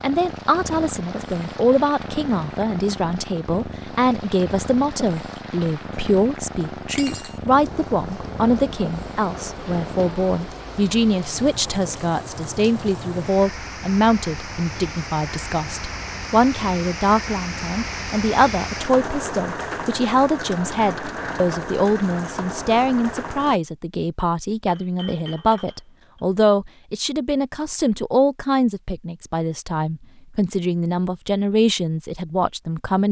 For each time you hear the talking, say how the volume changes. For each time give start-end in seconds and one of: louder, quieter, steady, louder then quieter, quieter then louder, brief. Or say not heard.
0.0-33.0 steady.